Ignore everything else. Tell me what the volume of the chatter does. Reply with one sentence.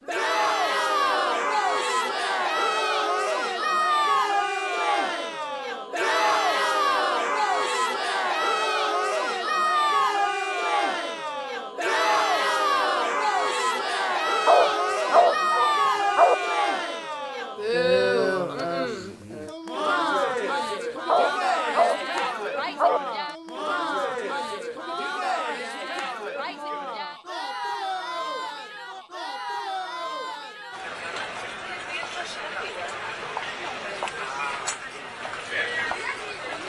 The loudness of the chatter goes down.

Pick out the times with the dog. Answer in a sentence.
The dog can be heard from 14.4 to 16.4 s and from 21.1 to 23.0 s.